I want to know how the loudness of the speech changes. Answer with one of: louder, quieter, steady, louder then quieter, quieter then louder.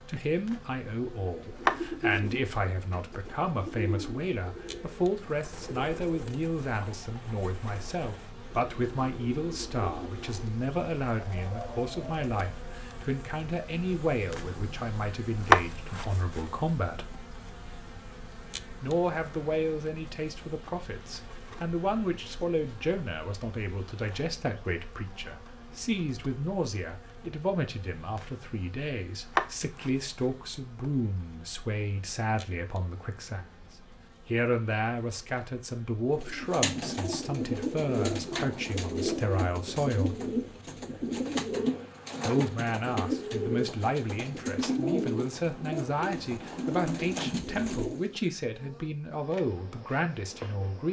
steady.